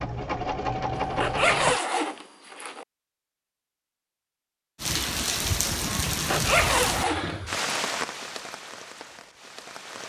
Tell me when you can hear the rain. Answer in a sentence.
The rain can be heard from 4.8 to 10.0 s.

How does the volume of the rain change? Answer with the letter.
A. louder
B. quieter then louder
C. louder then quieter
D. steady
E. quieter
E.